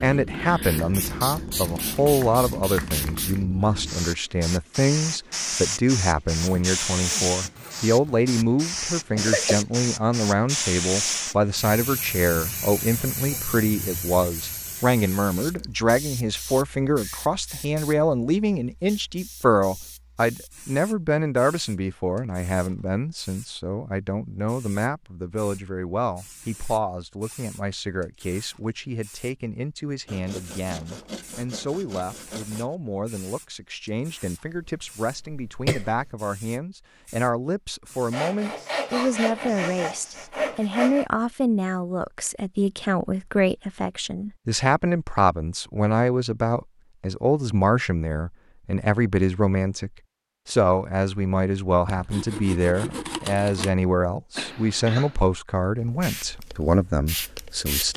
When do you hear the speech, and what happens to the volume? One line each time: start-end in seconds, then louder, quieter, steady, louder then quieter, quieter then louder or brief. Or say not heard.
0.0-57.9 quieter then louder.